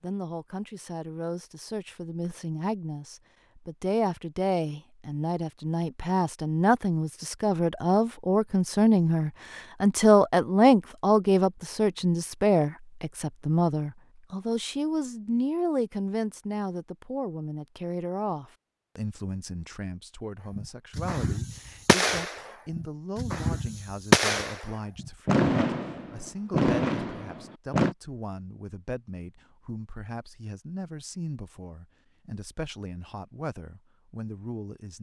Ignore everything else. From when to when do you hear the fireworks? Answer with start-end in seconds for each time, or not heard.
20.5-27.9.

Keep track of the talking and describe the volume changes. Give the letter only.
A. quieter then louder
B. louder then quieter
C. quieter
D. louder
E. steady
B.